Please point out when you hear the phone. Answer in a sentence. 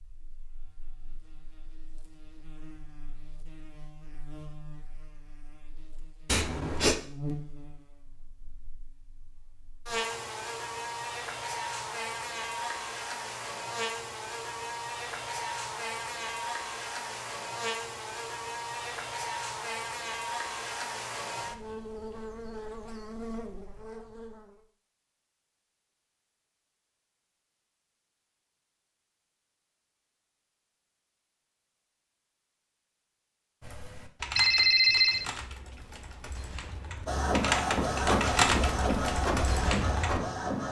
You can hear the phone from 34.4 to 35.2 s.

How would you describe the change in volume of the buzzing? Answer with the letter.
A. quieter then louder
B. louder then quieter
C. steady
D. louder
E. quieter
D.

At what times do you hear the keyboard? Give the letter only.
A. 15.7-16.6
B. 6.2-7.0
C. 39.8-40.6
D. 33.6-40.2
D.